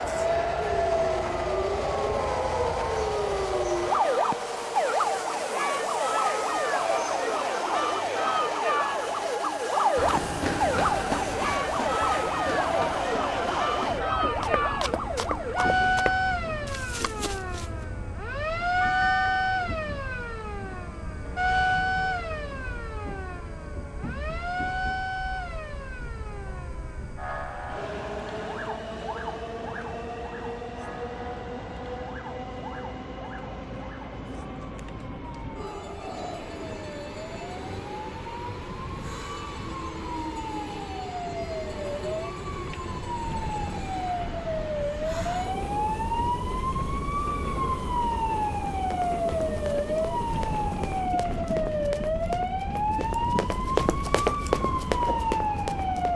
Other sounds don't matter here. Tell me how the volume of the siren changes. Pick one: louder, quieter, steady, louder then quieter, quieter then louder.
quieter then louder.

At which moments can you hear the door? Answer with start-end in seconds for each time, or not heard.
not heard.